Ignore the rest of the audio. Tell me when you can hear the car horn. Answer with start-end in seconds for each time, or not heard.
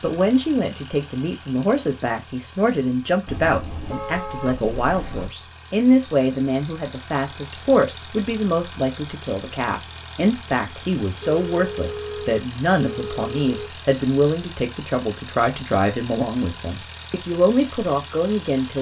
3.2-5.3, 11.2-13.7.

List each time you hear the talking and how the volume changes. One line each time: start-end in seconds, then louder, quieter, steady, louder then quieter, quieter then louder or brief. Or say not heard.
0.0-18.7 steady.